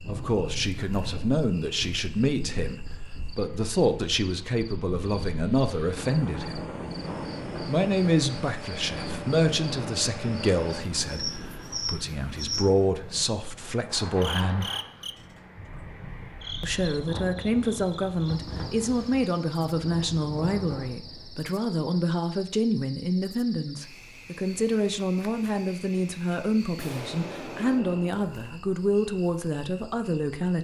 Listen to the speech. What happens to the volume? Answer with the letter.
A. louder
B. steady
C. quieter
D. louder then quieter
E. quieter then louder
B.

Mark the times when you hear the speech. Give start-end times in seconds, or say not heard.
0.1-6.6, 7.7-14.7, 16.6-30.6.